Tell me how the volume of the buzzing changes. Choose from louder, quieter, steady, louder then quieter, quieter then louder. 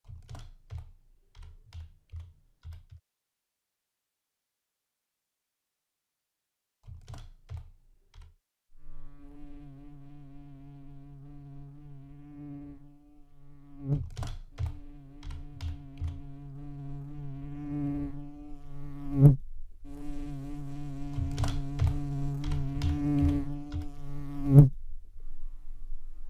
louder.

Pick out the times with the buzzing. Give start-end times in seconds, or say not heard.
8.7-26.2.